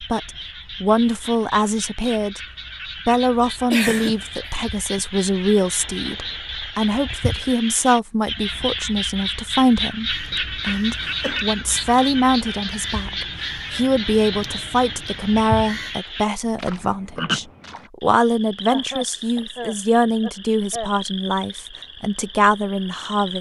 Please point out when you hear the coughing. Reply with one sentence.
The coughing can be heard from 3.7 to 5.0 s, from 10.3 to 11.4 s and from 18.7 to 20.9 s.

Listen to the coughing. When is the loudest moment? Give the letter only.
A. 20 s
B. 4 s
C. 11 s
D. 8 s
B.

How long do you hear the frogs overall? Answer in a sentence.
You can hear the frogs for 23 seconds altogether.